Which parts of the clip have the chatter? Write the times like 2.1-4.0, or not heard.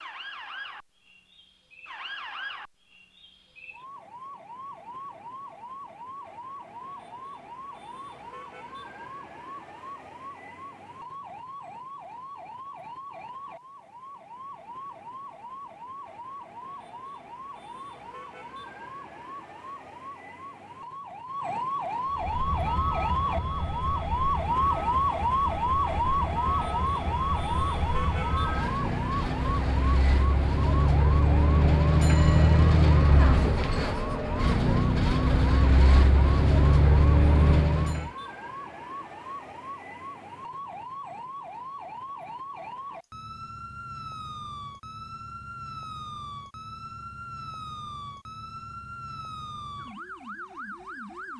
not heard.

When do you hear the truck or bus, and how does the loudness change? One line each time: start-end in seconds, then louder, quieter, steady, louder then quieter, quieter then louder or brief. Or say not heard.
22.1-38.1 louder.